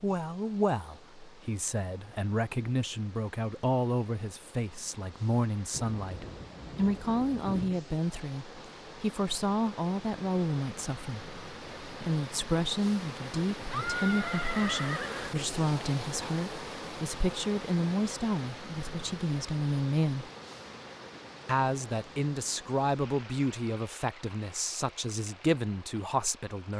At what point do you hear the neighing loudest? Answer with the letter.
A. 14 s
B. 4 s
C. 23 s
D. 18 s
A.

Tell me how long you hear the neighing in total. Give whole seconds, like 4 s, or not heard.
2 s.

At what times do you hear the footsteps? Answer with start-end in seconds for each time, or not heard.
not heard.